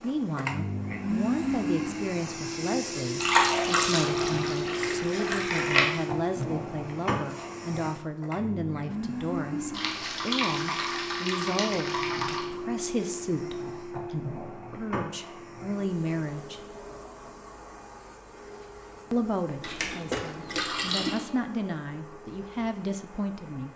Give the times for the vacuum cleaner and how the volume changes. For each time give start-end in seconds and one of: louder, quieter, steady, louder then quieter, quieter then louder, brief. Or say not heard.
0.0-23.7 quieter.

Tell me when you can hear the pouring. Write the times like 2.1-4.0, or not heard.
3.2-5.8, 9.7-12.4, 19.6-21.2.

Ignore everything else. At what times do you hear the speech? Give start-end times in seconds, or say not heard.
0.0-16.6, 19.1-23.7.